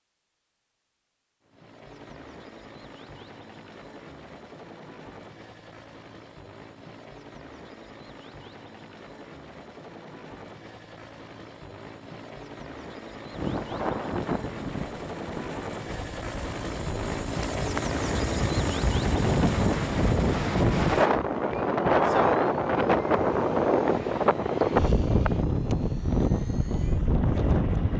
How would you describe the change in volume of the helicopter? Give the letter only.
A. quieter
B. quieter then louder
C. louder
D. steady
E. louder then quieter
E.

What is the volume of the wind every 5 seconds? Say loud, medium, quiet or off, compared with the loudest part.
off, off, medium, medium, loud, loud.